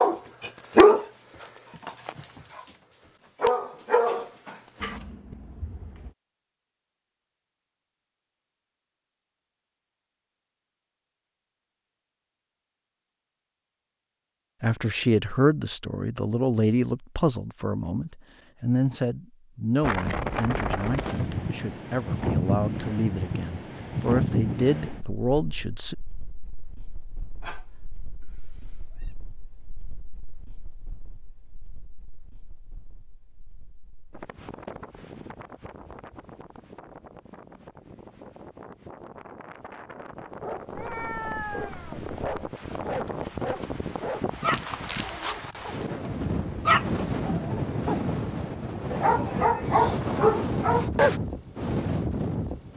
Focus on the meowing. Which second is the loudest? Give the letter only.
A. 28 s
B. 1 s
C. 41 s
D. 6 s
C.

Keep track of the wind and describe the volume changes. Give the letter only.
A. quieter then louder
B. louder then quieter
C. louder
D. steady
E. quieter
A.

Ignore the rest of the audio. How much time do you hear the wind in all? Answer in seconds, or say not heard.
33 s.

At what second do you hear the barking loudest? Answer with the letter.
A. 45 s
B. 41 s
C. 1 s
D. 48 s
C.